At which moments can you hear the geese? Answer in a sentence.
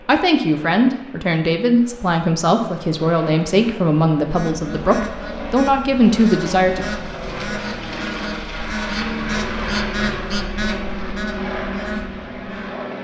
The geese can be heard from 4.2 to 12.8 s.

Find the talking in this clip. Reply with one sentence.
You can hear the talking from 0.1 to 6.8 s.